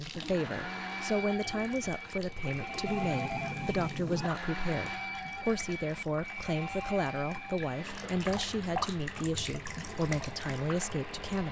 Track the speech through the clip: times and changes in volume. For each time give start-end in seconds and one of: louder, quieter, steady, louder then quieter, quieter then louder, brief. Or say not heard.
0.0-11.4 steady.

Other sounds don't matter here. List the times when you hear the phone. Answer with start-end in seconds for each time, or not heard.
2.9-4.3.